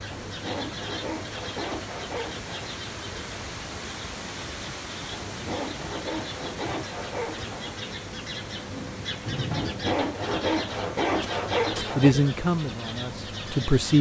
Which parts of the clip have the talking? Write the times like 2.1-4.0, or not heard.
11.9-13.9.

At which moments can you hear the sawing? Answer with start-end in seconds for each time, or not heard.
0.1-2.7, 5.1-7.8, 9.5-12.2.